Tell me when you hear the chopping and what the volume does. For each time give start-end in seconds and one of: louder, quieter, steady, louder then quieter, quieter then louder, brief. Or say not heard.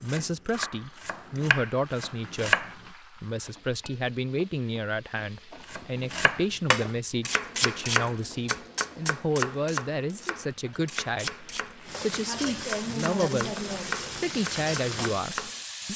0.0-2.8 brief
5.7-15.7 quieter.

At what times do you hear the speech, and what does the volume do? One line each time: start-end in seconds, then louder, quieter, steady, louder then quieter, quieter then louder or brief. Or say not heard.
0.0-15.9 steady.